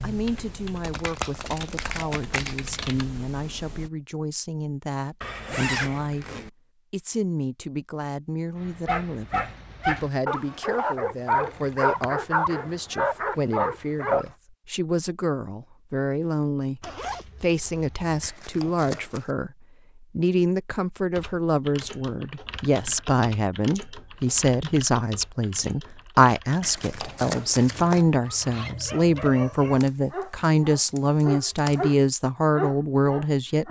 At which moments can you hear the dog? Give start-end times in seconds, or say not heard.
8.6-14.3, 27.5-33.6.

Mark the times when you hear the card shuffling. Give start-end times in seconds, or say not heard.
0.8-2.6, 18.2-19.4, 26.6-28.1.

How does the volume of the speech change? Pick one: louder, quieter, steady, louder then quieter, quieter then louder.
louder.